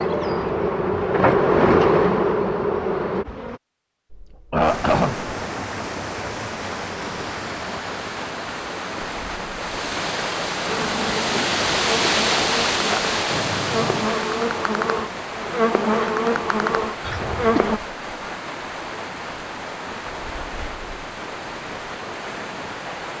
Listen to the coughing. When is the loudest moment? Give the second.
5 s.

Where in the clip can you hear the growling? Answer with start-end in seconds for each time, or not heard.
13.2-14.1.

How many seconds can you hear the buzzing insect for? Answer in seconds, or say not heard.
11 s.